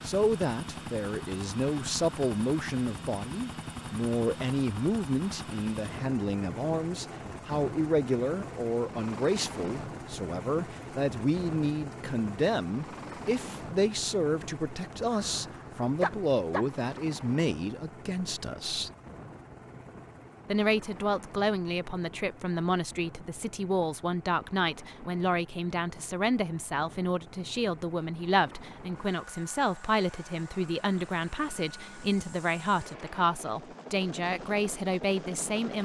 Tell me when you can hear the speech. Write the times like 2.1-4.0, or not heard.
0.0-18.9, 20.4-35.8.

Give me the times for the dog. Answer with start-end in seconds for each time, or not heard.
15.1-16.6.